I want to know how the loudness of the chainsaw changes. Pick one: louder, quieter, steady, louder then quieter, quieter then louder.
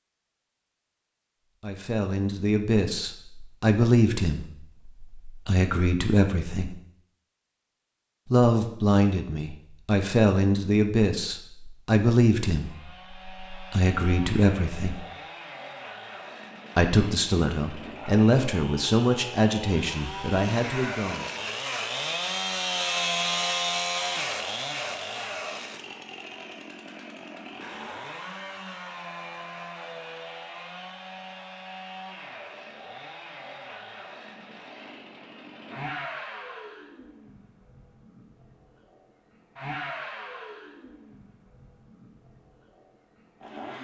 louder then quieter.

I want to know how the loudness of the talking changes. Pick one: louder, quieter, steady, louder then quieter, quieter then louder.
steady.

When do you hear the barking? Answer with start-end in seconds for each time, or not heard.
not heard.